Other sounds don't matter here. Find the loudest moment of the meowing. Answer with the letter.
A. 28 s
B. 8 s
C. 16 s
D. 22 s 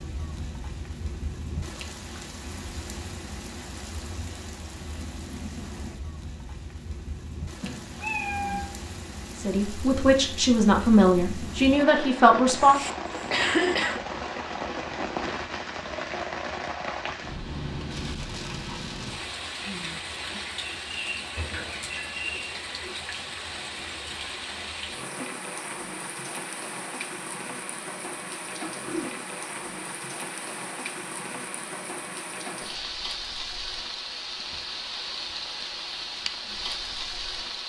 B.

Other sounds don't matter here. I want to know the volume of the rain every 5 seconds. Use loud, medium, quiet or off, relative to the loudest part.
medium, medium, loud, loud, loud, loud, loud, loud.